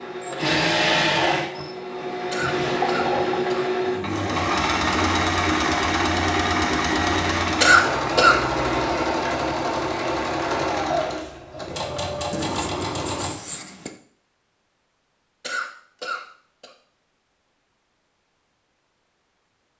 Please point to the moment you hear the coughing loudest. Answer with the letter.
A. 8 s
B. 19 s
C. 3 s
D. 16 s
A.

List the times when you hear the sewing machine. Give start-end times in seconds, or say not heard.
0.0-13.3.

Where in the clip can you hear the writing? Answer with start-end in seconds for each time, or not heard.
12.3-13.9.